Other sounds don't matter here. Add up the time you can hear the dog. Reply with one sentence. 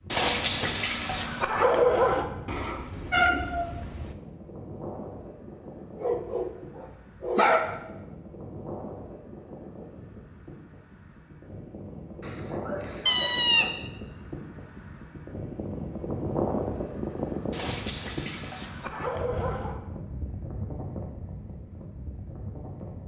You can hear the dog for 8 seconds altogether.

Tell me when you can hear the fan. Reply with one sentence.
The fan can be heard from 0.0 to 23.0 s.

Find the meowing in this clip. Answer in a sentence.
You can hear the meowing from 2.5 to 4.2 s and from 13.1 to 13.7 s.